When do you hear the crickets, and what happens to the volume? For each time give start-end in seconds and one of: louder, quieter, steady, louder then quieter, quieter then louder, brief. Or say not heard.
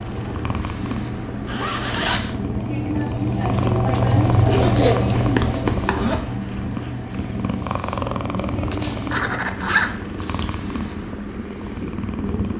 0.0-9.5 louder then quieter.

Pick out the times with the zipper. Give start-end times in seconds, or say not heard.
1.4-2.4, 4.5-6.3, 8.8-10.4.